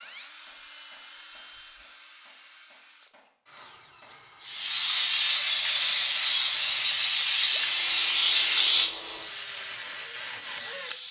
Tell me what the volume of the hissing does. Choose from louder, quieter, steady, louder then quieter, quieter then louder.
quieter.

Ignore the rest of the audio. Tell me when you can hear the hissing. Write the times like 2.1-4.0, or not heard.
4.4-11.0.